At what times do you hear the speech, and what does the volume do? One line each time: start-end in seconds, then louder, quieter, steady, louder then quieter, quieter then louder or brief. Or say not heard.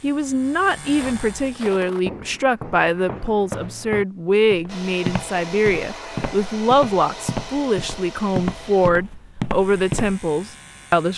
0.0-11.1 steady.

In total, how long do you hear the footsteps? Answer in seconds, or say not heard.
9 s.